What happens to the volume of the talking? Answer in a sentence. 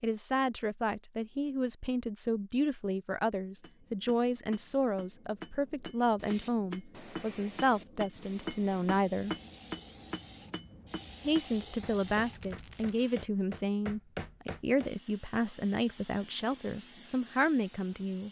The volume of the talking stays about the same.